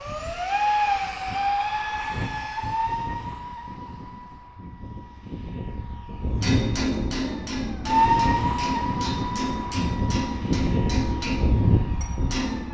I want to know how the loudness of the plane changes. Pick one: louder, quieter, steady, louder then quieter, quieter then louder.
quieter then louder.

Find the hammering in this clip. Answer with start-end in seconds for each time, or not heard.
6.2-12.6.